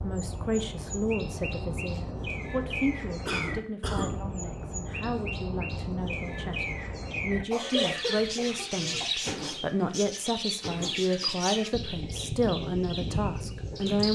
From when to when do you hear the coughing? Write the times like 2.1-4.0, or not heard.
3.2-4.2, 7.5-9.1.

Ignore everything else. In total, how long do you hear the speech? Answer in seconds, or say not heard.
14 s.